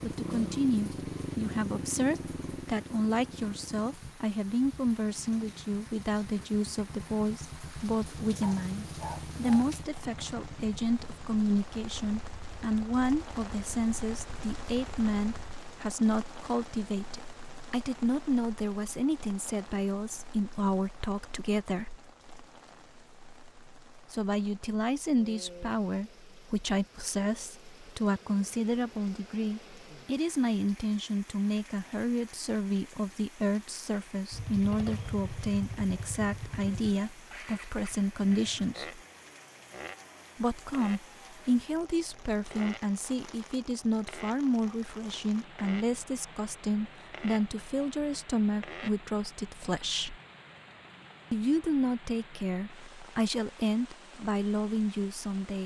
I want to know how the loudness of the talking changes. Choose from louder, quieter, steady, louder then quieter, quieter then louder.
steady.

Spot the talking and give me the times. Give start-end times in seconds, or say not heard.
0.0-21.9, 24.1-39.0, 40.4-50.1, 51.3-55.6.